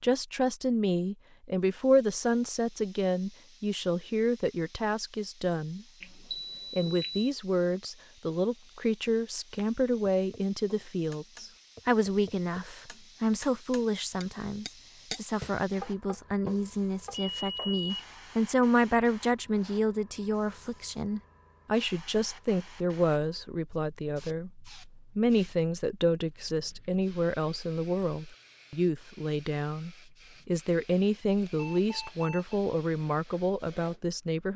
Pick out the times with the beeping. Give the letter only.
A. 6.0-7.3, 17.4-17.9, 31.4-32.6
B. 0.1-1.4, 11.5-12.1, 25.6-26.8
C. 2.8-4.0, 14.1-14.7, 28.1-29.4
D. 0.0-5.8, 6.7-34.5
A.